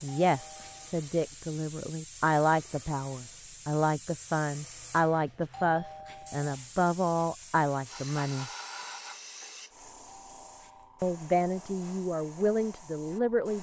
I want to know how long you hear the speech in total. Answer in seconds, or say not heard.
11 s.